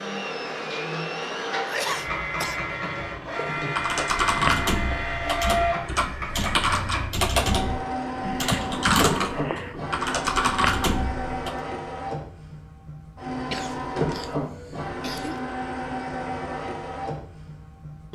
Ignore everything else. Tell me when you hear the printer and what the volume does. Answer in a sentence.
The printer can be heard from 0.0 to 18.0 s, at a steady volume.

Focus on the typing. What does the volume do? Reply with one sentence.
The volume of the typing stays about the same.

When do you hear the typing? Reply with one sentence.
The typing can be heard from 3.5 to 11.6 s.